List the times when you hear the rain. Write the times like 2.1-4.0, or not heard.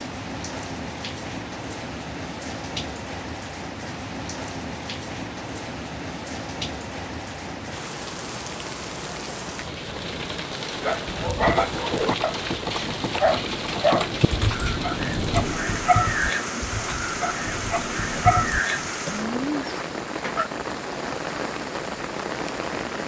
0.0-23.0.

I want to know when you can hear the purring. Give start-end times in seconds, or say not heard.
not heard.